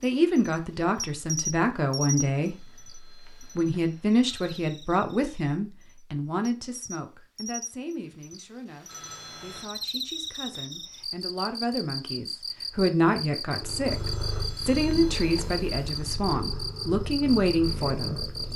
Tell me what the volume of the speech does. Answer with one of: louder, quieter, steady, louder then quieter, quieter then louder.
quieter then louder.